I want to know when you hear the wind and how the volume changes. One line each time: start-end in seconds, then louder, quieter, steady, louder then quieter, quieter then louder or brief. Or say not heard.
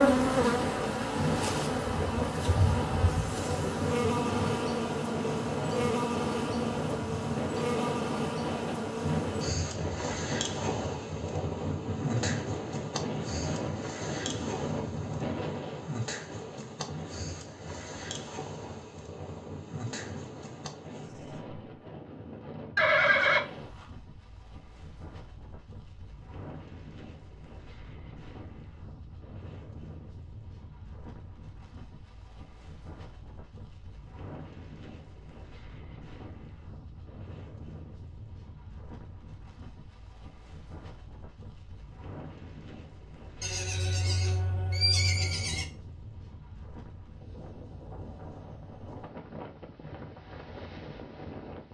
0.0-51.6 quieter.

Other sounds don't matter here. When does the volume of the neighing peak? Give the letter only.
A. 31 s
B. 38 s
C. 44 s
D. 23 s
D.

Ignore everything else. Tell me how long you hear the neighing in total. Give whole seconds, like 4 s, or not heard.
3 s.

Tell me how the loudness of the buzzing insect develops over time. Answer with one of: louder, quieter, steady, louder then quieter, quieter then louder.
quieter.